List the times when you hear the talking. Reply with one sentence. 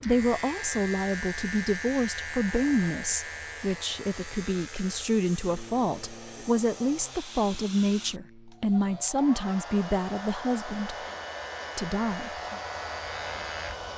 You can hear the talking from 0.0 to 10.9 s and from 11.8 to 12.6 s.